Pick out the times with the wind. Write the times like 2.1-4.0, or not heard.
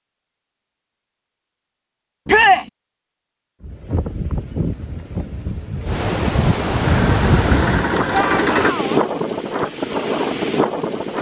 3.6-11.1.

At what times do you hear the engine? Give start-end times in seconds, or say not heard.
6.8-8.8.